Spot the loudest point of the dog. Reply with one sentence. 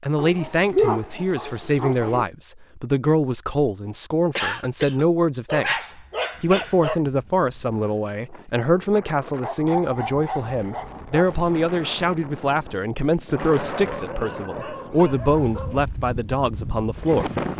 The volume of the dog peaks at 1 second.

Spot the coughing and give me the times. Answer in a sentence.
You can hear the coughing from 4.3 to 5.0 s.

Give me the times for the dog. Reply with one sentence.
You can hear the dog from 0.1 to 2.2 s, from 5.5 to 7.0 s, from 9.4 to 11.3 s and from 13.4 to 15.8 s.